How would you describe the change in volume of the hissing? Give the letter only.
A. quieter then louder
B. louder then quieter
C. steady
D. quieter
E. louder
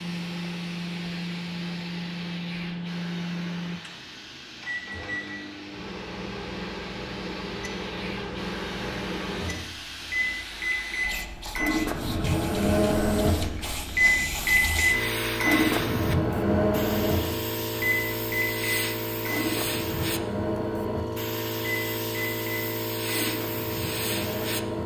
E.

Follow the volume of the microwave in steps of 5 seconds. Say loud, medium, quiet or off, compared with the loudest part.
medium, medium, loud, loud, medium.